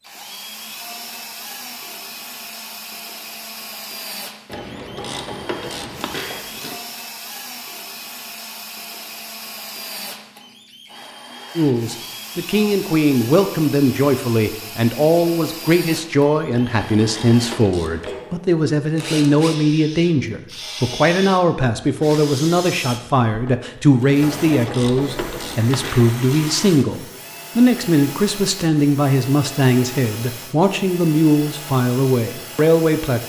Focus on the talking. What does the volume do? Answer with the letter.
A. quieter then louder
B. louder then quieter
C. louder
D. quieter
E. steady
E.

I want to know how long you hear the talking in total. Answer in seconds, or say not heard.
22 s.